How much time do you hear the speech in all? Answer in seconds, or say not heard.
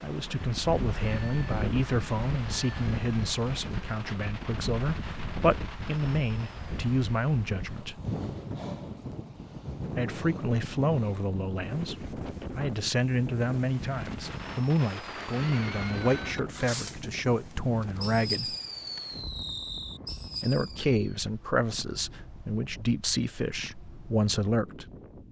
21 s.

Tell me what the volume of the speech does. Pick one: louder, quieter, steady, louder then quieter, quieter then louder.
steady.